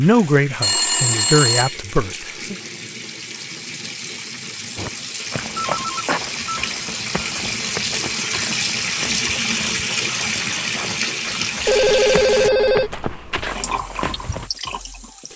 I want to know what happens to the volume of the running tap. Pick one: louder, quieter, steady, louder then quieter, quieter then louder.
louder then quieter.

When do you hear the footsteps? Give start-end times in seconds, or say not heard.
4.8-14.5.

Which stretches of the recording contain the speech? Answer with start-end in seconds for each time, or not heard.
0.0-2.5.